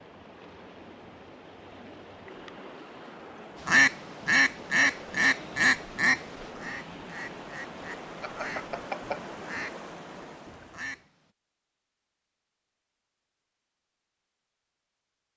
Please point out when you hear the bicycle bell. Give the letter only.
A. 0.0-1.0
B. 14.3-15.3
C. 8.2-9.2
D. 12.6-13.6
C.